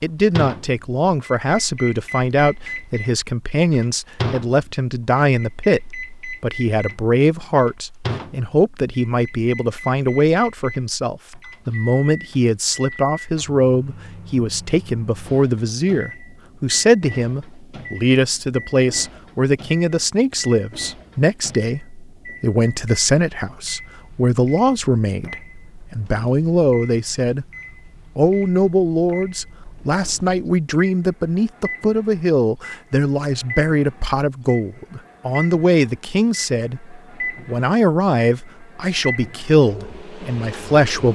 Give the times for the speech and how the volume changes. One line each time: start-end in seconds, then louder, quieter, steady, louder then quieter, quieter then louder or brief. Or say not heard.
0.0-27.4 steady
28.1-41.1 steady.